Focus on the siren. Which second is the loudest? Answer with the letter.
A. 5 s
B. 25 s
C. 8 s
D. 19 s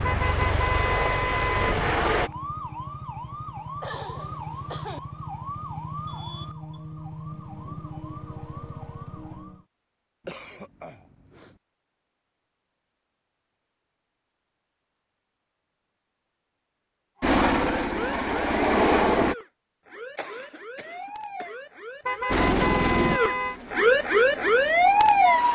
B.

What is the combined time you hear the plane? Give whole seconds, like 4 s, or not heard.
8 s.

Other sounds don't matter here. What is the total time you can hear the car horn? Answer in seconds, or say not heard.
3 s.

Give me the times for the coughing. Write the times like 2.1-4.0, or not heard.
3.8-5.0, 10.2-11.6, 19.9-21.6.